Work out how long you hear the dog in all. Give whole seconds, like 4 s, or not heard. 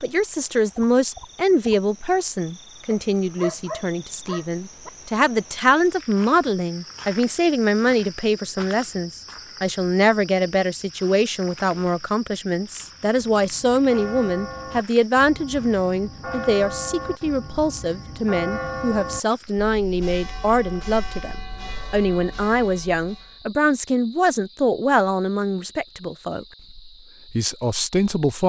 2 s.